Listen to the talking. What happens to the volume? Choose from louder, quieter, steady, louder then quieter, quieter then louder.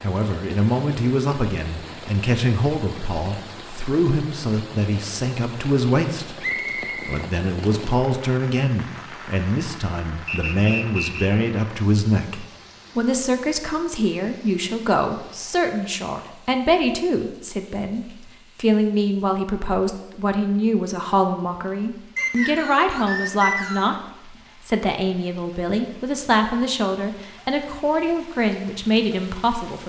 steady.